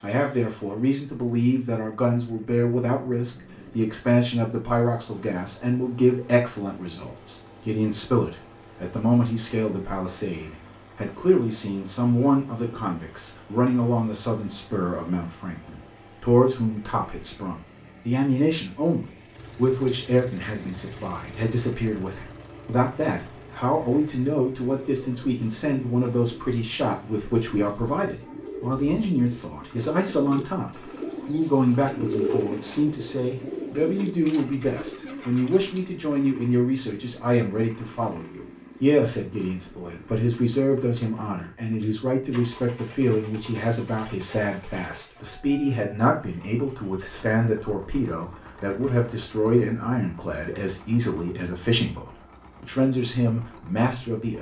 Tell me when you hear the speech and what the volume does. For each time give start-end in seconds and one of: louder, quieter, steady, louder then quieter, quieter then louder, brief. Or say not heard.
0.0-54.3 steady.